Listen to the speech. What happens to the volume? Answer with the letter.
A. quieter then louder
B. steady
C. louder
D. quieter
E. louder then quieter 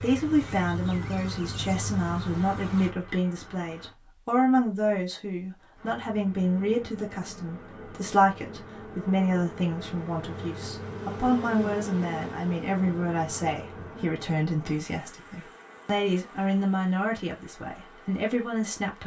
B.